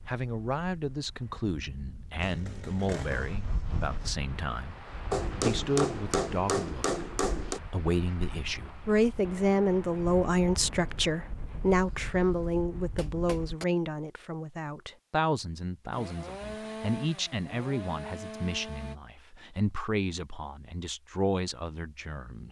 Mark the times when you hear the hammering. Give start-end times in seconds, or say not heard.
5.1-7.6, 11.7-13.7.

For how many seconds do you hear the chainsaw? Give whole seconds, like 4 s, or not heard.
5 s.